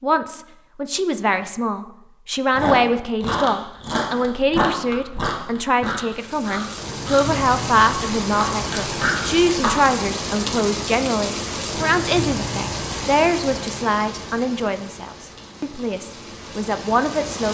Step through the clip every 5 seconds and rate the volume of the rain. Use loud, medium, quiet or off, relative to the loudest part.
off, loud, loud, medium.